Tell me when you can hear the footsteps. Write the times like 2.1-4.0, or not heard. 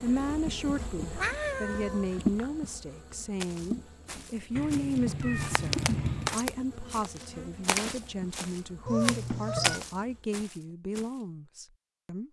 3.4-11.1.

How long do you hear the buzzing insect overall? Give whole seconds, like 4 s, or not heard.
10 s.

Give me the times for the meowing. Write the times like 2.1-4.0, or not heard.
1.1-2.5, 4.5-6.3, 8.8-9.8.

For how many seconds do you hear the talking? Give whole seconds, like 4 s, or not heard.
12 s.